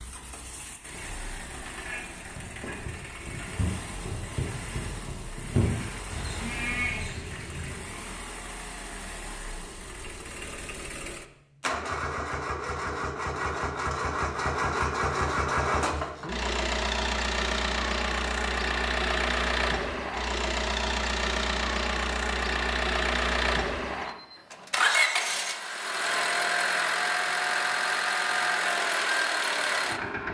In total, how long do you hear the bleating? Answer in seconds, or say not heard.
6 s.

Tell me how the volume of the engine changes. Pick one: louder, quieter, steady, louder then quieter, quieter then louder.
louder.